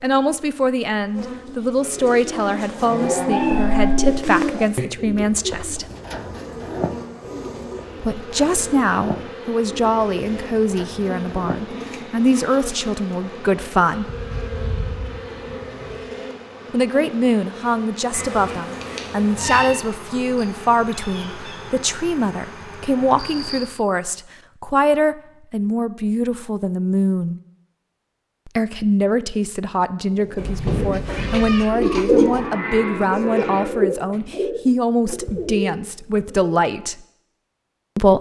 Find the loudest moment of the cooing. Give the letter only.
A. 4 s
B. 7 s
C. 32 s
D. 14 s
C.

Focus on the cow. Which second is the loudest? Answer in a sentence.
The volume of the cow peaks at 4 seconds.